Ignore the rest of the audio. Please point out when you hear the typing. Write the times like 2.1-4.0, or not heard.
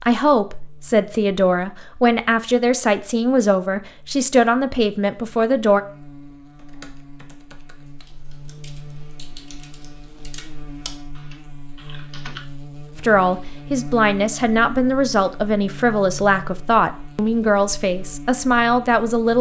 6.5-12.4.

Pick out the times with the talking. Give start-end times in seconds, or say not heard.
0.0-5.8, 12.9-19.3.